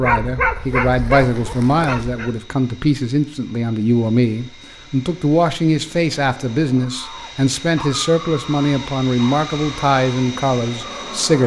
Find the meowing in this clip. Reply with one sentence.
You can't hear the meowing here.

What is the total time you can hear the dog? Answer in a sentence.
The dog can be heard for 7 seconds in total.